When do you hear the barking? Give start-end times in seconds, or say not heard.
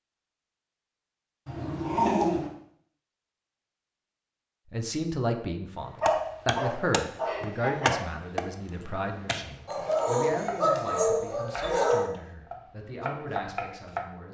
1.4-2.5, 6.0-8.0, 9.7-12.1.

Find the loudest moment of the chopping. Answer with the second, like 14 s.
8 s.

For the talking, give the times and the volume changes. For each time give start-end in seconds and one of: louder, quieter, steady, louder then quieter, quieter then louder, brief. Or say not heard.
4.7-14.2 quieter.